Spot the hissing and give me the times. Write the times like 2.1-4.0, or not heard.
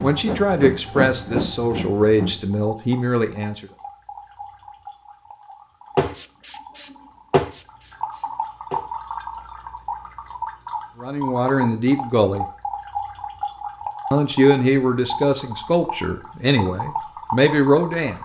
0.0-2.5, 6.0-8.8.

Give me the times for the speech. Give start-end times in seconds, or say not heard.
0.0-3.6, 11.0-12.4, 14.1-18.1.